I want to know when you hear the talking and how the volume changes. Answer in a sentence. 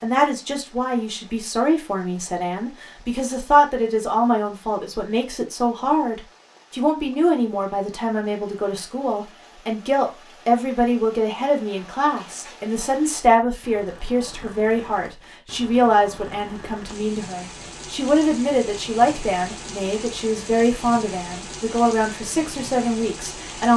The talking can be heard from 0.0 to 23.7 s, at a steady volume.